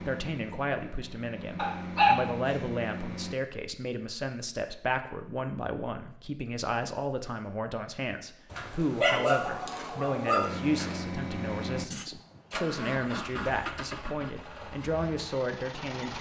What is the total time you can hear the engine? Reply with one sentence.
You can hear the engine for 9 seconds altogether.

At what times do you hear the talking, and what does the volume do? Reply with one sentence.
The talking can be heard from 0.0 to 16.1 s, at a steady volume.